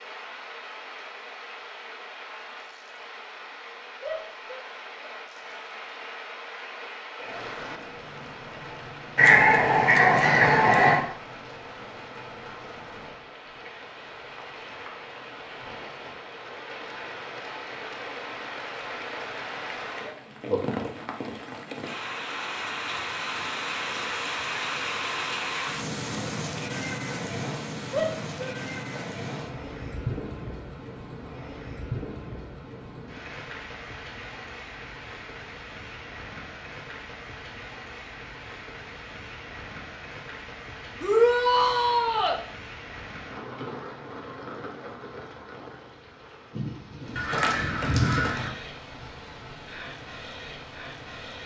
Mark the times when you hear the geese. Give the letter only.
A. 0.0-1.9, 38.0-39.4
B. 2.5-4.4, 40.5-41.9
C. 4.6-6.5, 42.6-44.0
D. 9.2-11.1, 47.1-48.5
D.